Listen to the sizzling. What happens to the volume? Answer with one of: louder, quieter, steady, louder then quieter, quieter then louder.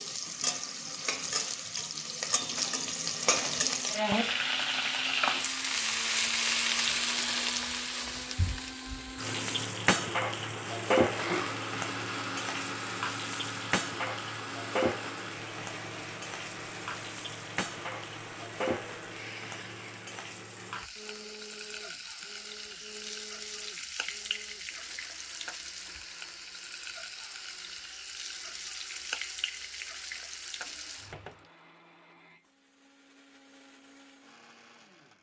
quieter.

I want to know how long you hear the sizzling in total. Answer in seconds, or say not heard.
31 s.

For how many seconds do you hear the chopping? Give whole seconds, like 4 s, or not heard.
not heard.